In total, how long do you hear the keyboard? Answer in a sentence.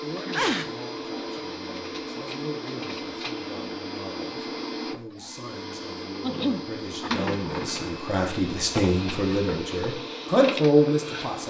The keyboard can't be heard in this clip.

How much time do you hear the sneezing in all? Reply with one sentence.
You can hear the sneezing for 2 seconds altogether.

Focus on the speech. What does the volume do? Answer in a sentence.
The volume of the speech goes up.